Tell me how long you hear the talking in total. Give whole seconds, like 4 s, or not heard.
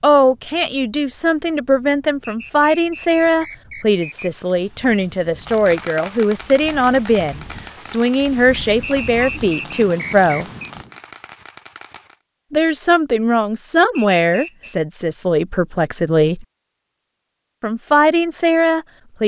16 s.